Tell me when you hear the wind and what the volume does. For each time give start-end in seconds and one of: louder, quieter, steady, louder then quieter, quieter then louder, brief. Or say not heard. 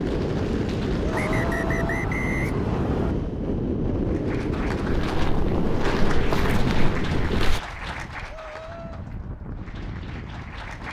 0.0-10.8 quieter.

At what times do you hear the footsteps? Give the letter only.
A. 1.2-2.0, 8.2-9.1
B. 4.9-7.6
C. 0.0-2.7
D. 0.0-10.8
B.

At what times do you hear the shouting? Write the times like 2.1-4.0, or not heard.
1.2-2.0, 8.2-9.1.